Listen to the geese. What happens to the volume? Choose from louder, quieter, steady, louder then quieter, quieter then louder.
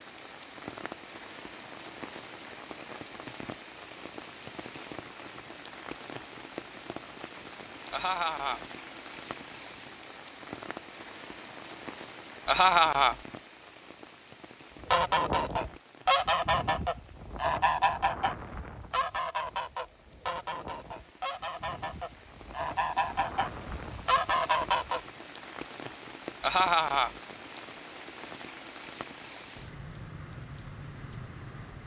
quieter then louder.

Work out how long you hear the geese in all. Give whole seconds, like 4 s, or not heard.
10 s.